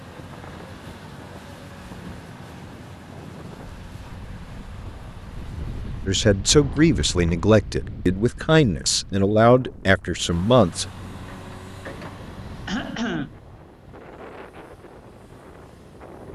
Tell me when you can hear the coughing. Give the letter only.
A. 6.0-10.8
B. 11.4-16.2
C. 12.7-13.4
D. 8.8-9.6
C.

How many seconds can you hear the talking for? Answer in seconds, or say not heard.
5 s.